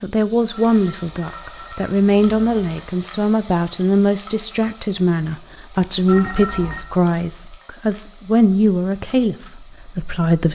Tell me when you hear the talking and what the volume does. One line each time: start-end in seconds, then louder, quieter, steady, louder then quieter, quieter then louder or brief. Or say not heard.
0.0-10.4 steady.